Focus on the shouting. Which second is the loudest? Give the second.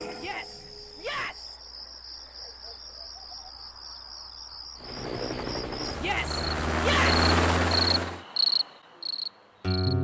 7 s.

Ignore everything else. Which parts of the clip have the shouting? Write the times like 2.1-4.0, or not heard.
0.1-1.6, 6.0-7.2.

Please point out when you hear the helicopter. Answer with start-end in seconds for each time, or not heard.
4.8-8.2.